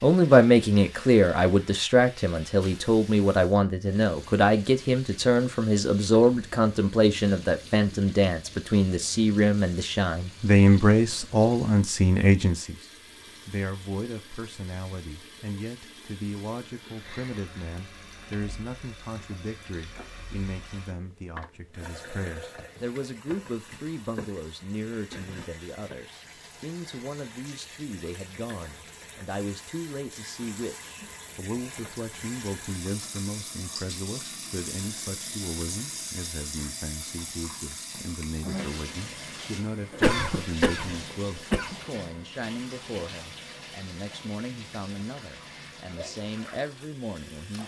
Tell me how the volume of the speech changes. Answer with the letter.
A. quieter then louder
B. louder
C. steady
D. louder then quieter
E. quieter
E.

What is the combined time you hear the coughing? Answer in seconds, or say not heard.
2 s.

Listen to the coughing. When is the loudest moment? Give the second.
40 s.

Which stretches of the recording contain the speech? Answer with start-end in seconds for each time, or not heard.
0.0-47.6.